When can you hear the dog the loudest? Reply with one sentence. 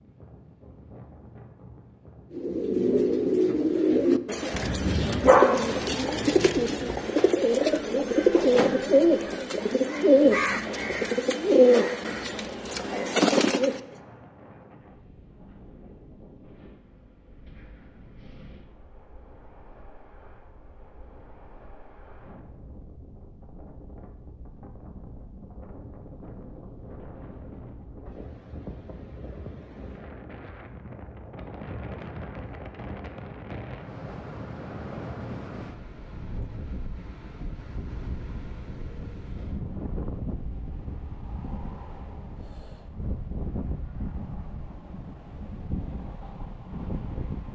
The volume of the dog peaks at 5 seconds.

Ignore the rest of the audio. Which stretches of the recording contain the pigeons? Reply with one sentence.
You can hear the pigeons from 2.3 to 14.0 s.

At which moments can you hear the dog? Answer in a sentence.
You can hear the dog from 4.5 to 7.0 s.